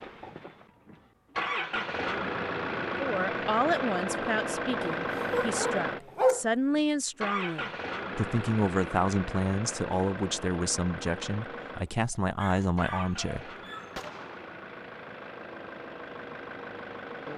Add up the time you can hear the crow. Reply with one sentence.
The crow can't be heard in this clip.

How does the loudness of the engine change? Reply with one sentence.
The volume of the engine goes down.